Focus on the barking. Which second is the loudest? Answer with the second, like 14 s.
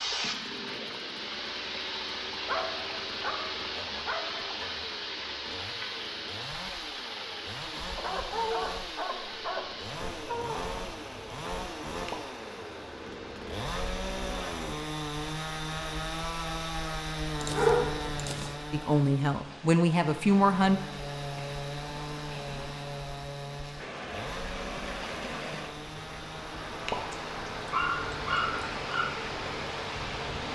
18 s.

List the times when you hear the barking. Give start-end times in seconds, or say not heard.
2.5-4.5, 8.0-10.7, 17.4-18.6, 27.1-29.1.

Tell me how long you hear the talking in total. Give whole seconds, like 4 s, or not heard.
2 s.